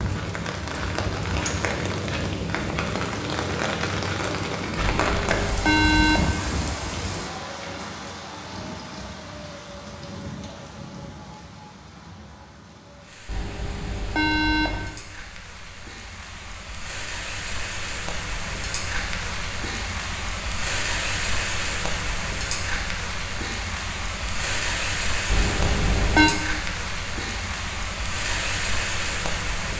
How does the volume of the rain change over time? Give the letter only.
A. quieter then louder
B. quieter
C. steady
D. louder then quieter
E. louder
A.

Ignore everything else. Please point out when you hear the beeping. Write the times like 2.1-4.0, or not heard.
5.0-6.3, 13.2-14.9, 25.2-26.4.